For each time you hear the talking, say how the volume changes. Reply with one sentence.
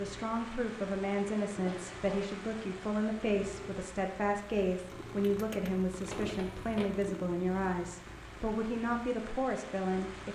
The talking can be heard from 0.0 to 10.3 s, at a steady volume.